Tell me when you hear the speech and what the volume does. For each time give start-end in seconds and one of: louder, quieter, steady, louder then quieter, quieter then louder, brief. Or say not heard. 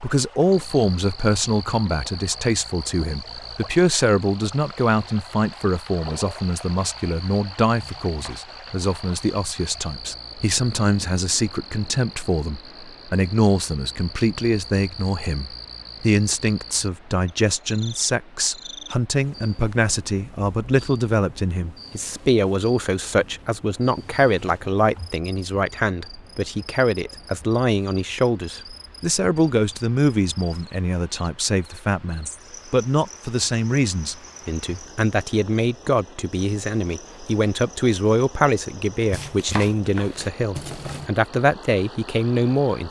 0.0-42.8 steady.